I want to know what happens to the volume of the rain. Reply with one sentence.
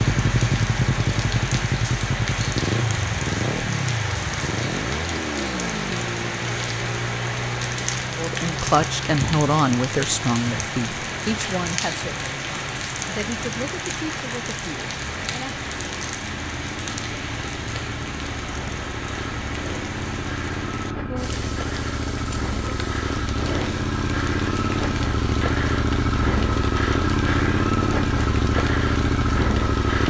The volume of the rain goes down.